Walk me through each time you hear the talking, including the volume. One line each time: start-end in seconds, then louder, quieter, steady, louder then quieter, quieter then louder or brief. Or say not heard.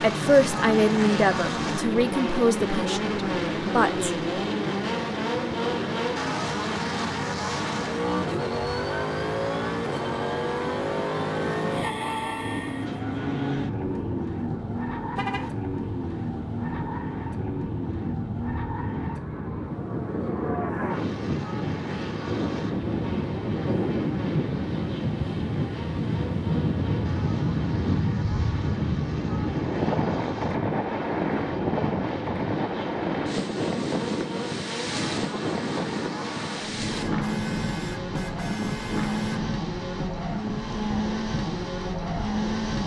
0.0-4.1 quieter.